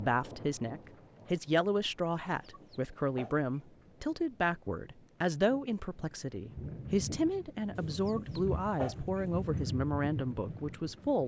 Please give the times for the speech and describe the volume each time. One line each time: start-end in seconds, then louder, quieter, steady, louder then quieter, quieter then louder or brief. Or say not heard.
0.0-11.2 steady.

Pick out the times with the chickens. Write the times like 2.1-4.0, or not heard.
2.4-3.6, 7.8-9.7.